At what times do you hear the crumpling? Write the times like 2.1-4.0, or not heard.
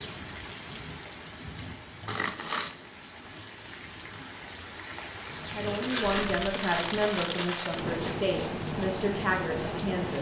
2.0-2.8, 5.6-8.2.